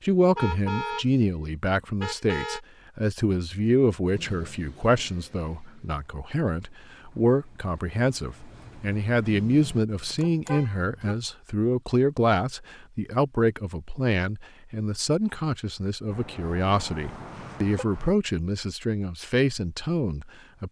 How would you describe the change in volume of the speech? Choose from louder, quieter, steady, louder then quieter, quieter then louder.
steady.